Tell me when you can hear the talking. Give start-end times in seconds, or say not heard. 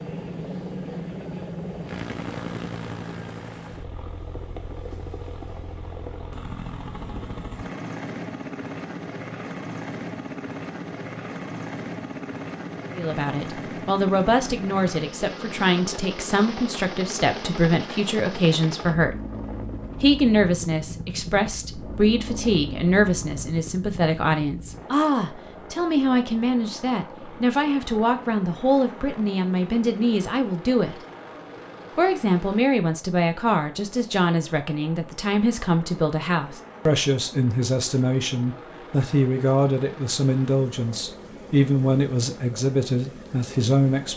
12.9-19.2, 19.9-31.0, 31.9-44.1.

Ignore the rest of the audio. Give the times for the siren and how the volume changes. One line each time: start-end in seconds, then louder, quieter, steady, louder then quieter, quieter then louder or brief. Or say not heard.
not heard.